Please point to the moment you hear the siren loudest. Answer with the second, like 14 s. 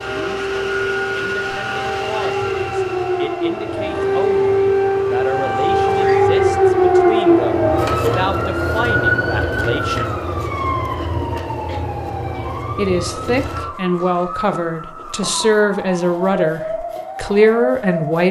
7 s.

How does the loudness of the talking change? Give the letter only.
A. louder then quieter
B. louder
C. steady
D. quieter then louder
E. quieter
B.